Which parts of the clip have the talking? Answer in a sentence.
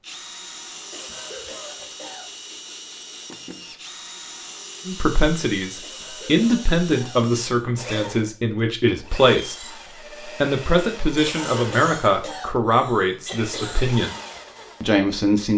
You can hear the talking from 4.8 to 9.6 s, from 10.2 to 14.2 s and from 14.8 to 15.5 s.